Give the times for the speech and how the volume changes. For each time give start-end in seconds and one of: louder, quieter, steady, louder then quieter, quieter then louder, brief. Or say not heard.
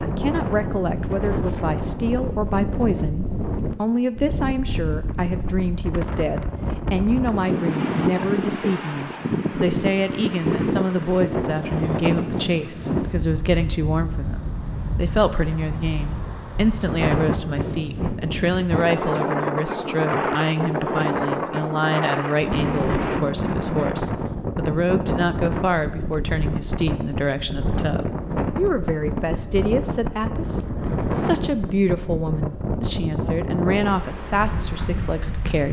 0.0-35.6 steady.